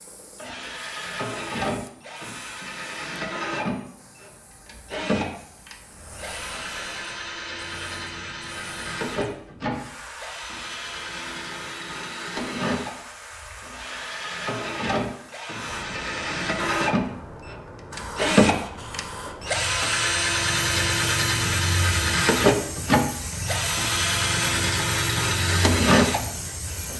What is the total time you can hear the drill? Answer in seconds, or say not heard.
27 s.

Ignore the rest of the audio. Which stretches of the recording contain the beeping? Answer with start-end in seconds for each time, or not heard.
not heard.